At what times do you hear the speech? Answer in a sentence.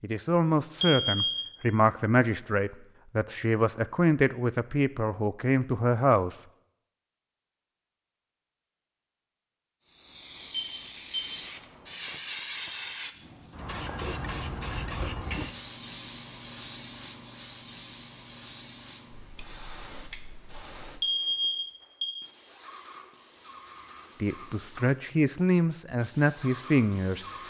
You can hear the speech from 0.0 to 6.3 s and from 24.2 to 27.2 s.